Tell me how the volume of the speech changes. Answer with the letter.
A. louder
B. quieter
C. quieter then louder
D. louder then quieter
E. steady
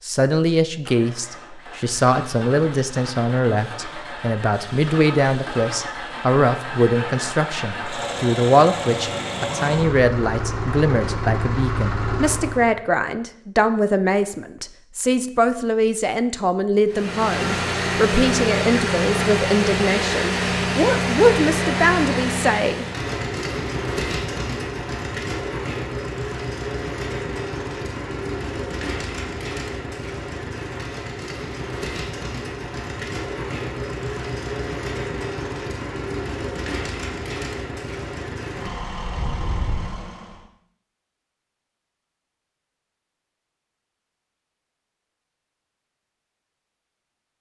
E.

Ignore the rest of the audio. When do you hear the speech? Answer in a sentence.
The speech can be heard from 0.1 to 22.9 s.